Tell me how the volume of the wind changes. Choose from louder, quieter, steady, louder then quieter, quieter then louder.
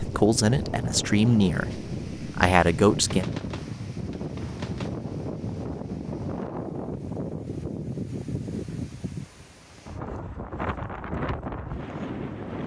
steady.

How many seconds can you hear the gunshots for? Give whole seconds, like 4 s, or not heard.
2 s.